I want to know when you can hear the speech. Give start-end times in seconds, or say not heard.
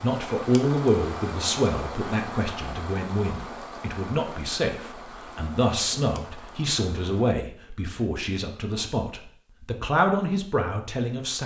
0.0-11.4.